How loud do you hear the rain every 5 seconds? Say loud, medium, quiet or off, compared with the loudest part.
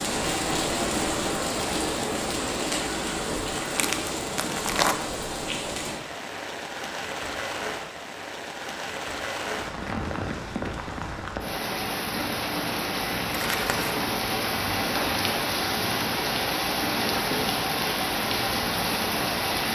loud, medium, loud, loud.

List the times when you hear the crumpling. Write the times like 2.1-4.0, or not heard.
3.7-5.0, 13.3-14.0.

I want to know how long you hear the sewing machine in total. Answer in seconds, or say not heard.
not heard.